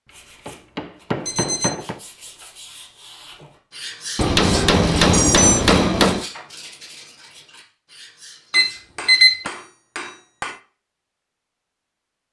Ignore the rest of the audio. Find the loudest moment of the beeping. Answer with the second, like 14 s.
9 s.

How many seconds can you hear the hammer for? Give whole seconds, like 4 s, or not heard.
6 s.